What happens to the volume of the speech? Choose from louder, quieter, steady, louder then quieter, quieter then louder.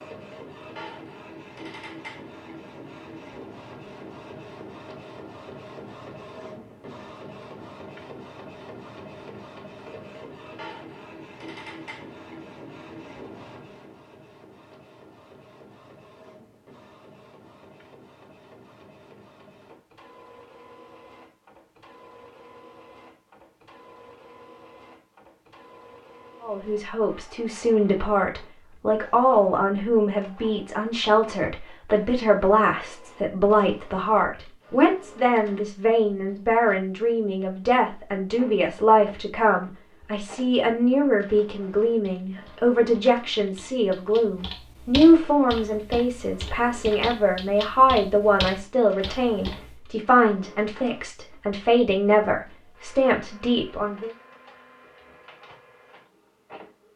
steady.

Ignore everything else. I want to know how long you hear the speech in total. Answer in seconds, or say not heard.
28 s.